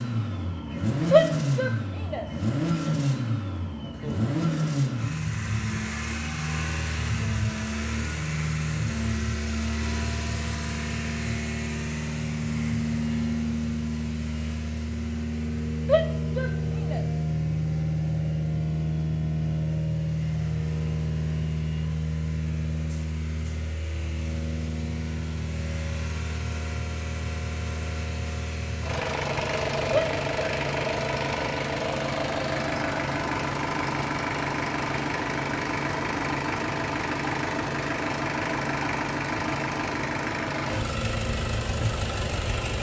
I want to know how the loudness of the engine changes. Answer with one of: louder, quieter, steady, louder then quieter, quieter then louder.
steady.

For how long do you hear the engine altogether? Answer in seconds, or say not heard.
43 s.